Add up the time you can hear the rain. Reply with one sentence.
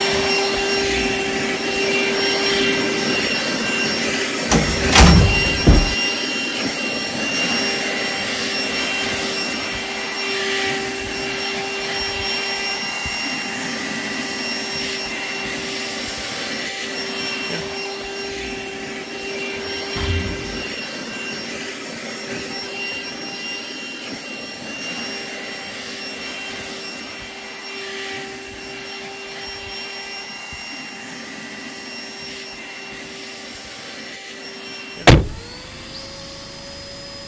The rain can't be heard in this clip.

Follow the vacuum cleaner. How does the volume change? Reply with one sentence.
The volume of the vacuum cleaner goes down.